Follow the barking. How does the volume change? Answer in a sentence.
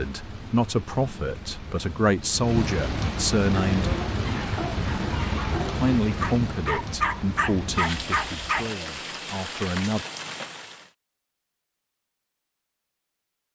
The loudness of the barking goes up.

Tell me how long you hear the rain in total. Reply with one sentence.
The rain can be heard for 11 seconds in total.